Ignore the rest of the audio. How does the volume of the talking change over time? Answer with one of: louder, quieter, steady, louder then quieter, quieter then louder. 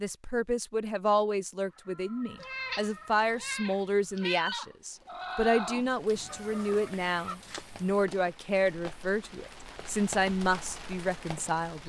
steady.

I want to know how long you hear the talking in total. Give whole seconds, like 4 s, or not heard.
12 s.